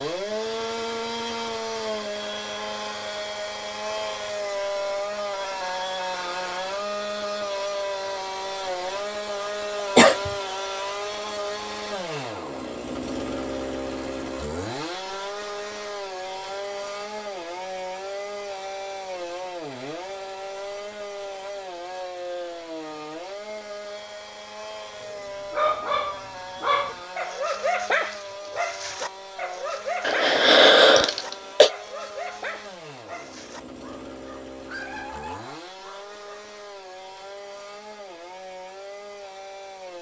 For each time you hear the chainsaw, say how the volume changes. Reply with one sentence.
You can hear the chainsaw from 0.0 to 39.9 s, getting quieter.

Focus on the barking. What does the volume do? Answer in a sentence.
The loudness of the barking goes down.